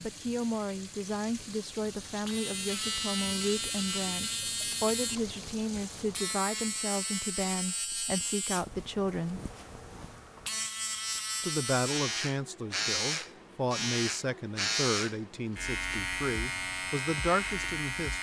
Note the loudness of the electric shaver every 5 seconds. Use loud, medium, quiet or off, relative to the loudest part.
loud, medium, loud, loud.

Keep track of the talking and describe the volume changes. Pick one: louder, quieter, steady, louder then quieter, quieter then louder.
steady.